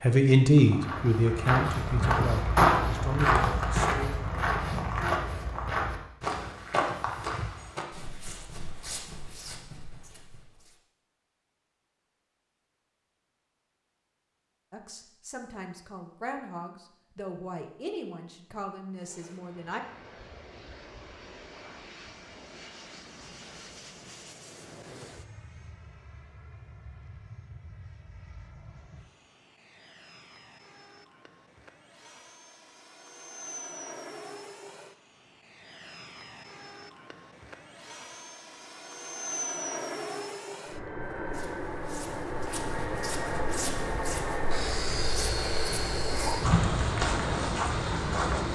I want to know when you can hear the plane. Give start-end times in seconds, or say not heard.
18.9-48.4.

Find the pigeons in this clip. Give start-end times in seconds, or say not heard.
not heard.